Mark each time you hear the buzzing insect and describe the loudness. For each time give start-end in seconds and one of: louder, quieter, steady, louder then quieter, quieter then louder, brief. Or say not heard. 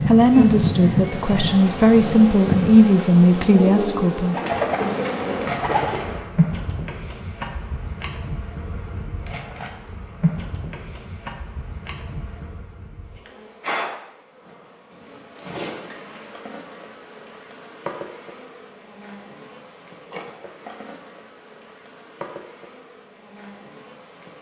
0.0-24.3 quieter.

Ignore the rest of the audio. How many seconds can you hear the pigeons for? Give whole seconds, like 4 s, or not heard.
2 s.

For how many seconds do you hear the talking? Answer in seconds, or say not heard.
4 s.